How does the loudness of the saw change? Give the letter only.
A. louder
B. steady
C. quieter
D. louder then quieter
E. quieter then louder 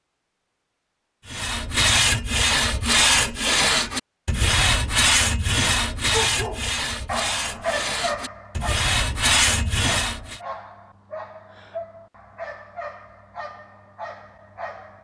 E.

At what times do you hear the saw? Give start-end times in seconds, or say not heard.
1.2-10.4.